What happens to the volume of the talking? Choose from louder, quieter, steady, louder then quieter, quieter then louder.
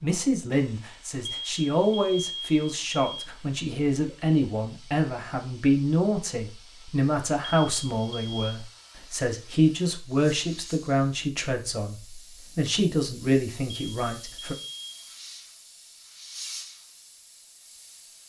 steady.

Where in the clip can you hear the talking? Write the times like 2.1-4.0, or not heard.
0.0-14.6.